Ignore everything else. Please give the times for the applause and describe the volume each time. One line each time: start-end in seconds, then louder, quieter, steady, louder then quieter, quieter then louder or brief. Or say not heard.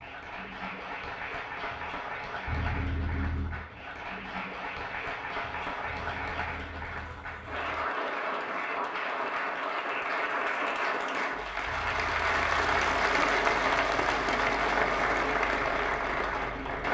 0.0-16.8 louder.